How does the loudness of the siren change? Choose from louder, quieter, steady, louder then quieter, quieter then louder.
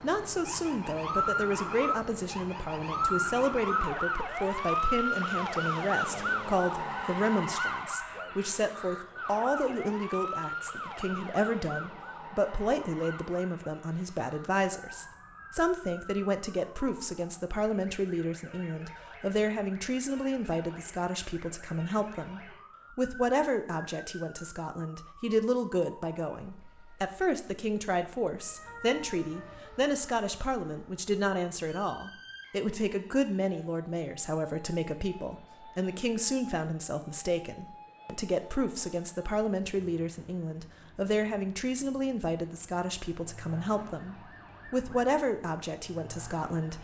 quieter.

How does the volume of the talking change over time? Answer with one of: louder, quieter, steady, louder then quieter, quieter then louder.
steady.